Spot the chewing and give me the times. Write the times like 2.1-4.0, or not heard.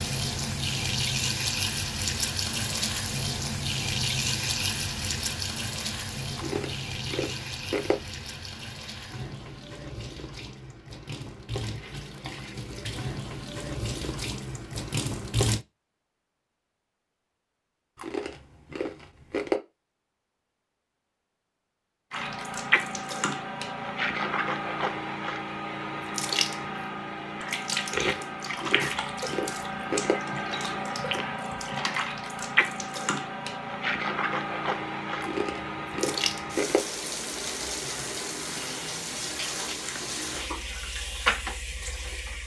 6.3-8.0, 17.9-19.6, 28.6-30.1, 35.2-36.8.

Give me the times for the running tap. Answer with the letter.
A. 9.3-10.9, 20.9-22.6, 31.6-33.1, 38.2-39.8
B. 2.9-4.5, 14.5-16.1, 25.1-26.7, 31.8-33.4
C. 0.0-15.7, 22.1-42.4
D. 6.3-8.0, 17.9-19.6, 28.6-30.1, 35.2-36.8
C.